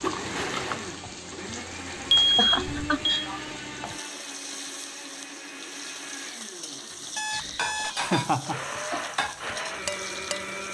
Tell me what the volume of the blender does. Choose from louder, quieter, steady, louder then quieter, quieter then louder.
quieter then louder.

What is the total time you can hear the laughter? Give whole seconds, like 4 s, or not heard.
2 s.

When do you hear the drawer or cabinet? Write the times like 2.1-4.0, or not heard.
not heard.